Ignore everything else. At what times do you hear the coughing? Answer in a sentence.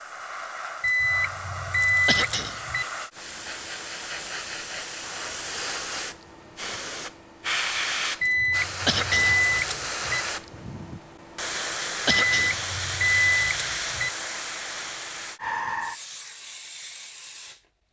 You can hear the coughing from 2.0 to 2.6 s, from 8.8 to 9.4 s and from 12.1 to 12.6 s.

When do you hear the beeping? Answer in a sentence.
You can hear the beeping from 0.8 to 2.9 s, from 8.2 to 10.2 s and from 12.2 to 14.1 s.